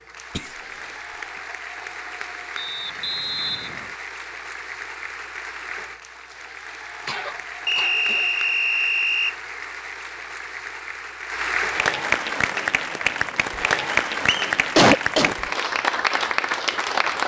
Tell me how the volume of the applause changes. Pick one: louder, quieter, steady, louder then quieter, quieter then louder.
louder.